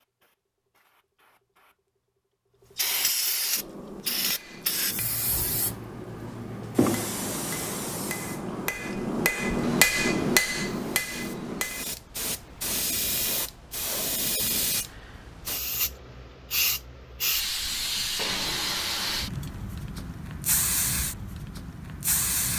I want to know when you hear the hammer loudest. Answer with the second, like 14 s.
10 s.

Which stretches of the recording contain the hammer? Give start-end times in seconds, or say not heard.
3.5-12.7.